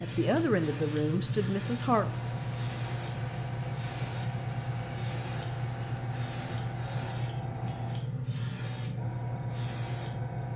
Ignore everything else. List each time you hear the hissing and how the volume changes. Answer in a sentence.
The hissing can be heard from 0.0 to 10.5 s, at a steady volume.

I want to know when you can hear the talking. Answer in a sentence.
You can hear the talking from 0.0 to 2.0 s.